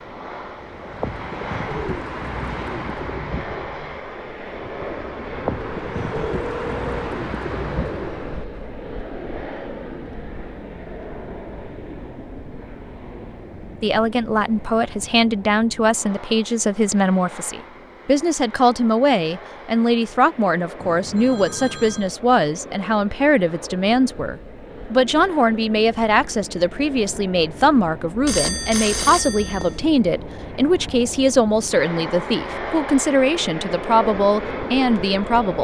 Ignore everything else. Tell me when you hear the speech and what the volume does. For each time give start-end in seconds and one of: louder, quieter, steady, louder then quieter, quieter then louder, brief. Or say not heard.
13.8-35.6 steady.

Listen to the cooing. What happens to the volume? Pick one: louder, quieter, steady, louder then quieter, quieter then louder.
quieter then louder.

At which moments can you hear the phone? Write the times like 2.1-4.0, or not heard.
6.2-6.9, 20.8-22.1, 28.2-29.8.